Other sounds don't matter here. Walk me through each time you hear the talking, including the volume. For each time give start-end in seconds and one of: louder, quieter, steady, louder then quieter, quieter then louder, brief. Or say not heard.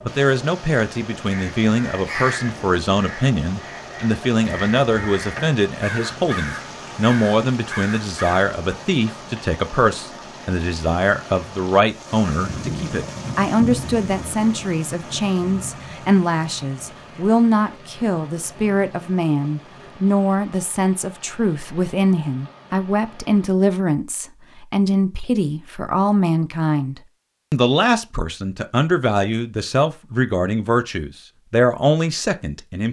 0.1-32.8 steady.